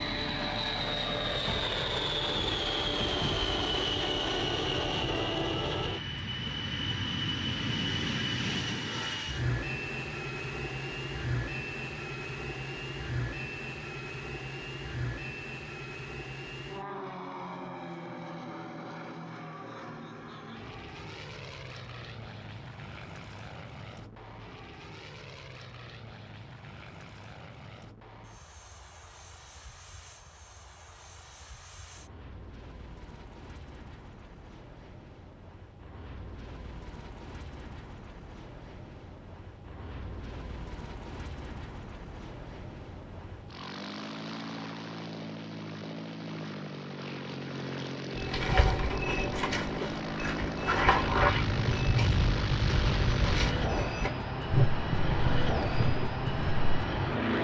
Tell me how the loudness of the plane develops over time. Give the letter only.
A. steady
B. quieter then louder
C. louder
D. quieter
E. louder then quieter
B.